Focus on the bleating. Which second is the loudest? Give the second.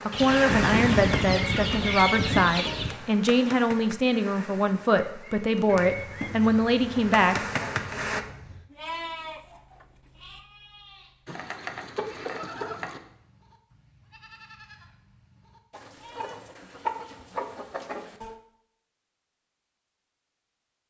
9 s.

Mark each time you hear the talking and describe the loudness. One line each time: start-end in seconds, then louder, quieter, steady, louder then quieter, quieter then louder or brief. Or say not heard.
0.1-7.5 steady.